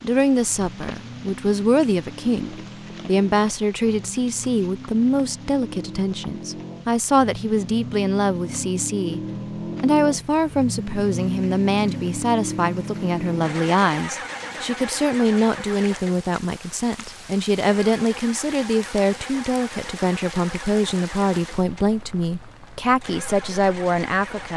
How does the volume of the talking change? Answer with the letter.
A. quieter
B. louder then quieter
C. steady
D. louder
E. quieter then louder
C.